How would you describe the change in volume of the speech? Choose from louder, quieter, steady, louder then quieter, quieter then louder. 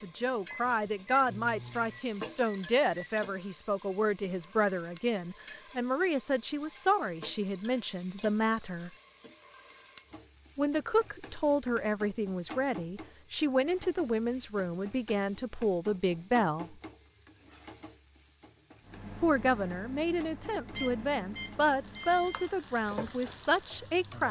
steady.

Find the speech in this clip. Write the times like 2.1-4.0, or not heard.
0.0-8.9, 10.6-16.8, 19.2-24.2.